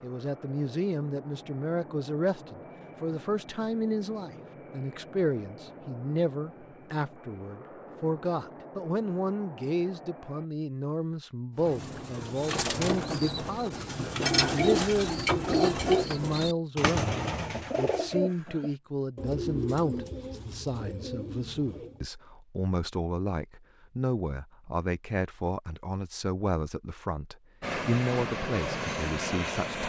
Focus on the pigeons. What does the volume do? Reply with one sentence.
The loudness of the pigeons goes up, then down.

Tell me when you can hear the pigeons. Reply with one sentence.
You can hear the pigeons from 11.6 to 22.1 s.